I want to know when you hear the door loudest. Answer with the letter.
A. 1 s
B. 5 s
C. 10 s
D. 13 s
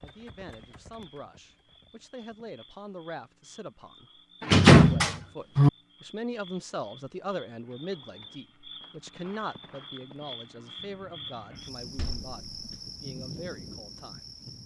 B.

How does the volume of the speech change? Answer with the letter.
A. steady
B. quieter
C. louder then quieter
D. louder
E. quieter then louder
C.